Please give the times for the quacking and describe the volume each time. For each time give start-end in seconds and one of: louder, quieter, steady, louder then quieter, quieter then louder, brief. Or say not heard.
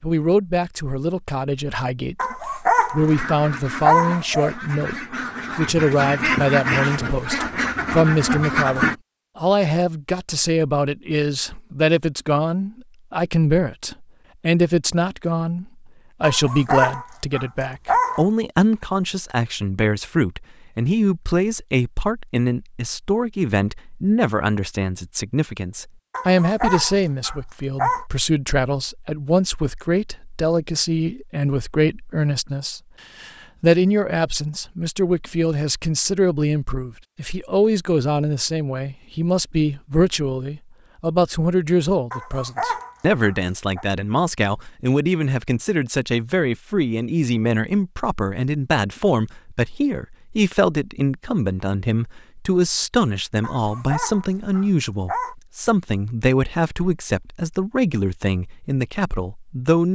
3.0-8.9 louder.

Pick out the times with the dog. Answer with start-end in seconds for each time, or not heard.
2.1-4.8, 16.2-18.2, 26.1-28.1, 42.1-43.9, 53.4-55.4.